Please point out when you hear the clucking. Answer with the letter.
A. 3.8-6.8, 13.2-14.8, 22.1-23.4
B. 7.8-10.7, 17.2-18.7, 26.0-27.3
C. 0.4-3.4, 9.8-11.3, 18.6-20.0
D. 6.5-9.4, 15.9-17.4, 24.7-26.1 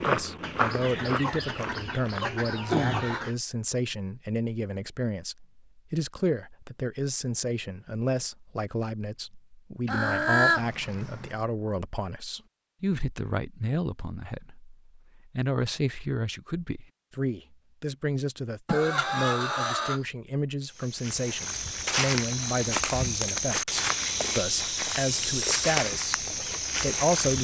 C.